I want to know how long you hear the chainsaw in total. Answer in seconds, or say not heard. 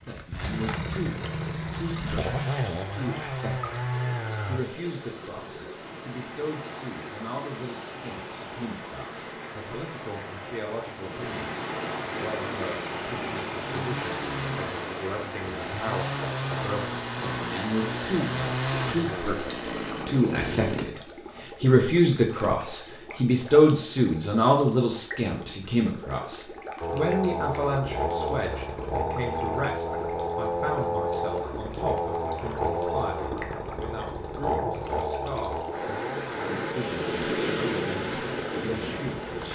26 s.